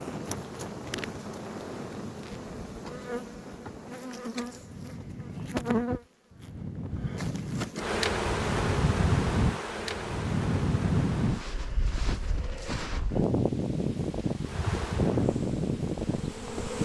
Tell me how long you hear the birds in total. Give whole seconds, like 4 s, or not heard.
not heard.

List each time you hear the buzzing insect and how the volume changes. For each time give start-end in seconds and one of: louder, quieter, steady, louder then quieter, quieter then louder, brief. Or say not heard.
0.0-11.5 louder
14.4-16.8 brief.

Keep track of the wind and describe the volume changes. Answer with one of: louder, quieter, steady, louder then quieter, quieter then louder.
louder.